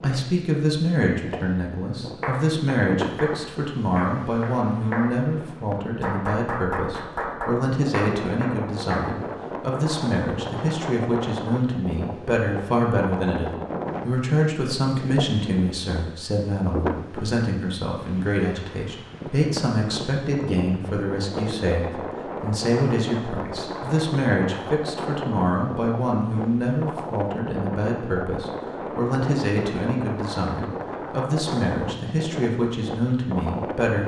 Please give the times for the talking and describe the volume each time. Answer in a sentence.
The talking can be heard from 0.0 to 34.0 s, at a steady volume.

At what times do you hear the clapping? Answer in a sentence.
You can hear the clapping from 2.2 to 9.0 s.